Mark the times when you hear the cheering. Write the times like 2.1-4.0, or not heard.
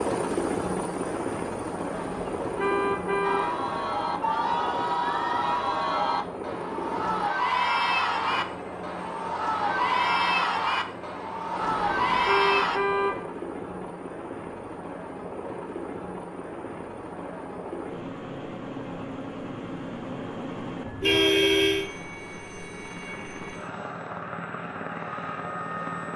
3.2-12.8.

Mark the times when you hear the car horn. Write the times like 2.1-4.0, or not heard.
1.9-3.5, 11.6-13.2, 21.0-21.9.